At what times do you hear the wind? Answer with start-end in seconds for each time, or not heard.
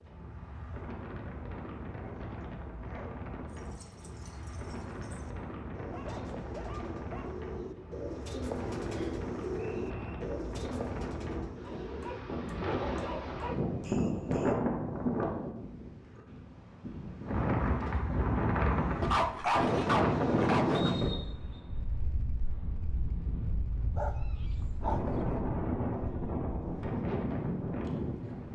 0.0-28.5.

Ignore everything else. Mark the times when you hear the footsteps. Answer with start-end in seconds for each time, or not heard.
not heard.